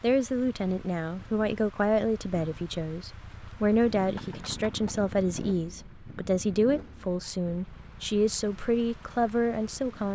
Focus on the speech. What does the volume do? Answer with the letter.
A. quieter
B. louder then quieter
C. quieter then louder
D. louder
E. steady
E.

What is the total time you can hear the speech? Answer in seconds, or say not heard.
10 s.